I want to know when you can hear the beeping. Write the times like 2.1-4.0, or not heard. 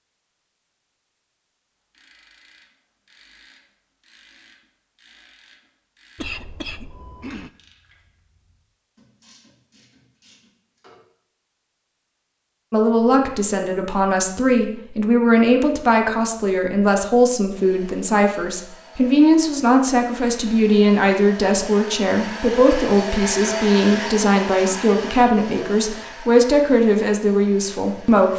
not heard.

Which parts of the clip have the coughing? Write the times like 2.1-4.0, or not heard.
6.2-7.5.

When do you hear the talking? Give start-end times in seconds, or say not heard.
12.7-28.3.